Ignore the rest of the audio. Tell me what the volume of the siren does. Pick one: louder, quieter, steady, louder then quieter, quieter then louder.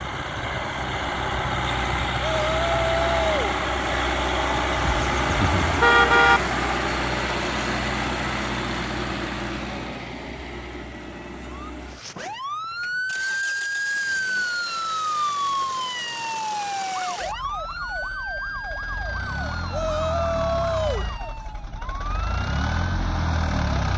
quieter.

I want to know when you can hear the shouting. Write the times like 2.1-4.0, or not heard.
2.2-3.5, 19.7-21.1.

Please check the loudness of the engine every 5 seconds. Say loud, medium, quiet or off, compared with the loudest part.
loud, loud, quiet, quiet, medium.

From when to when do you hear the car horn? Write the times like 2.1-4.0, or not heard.
5.0-6.4.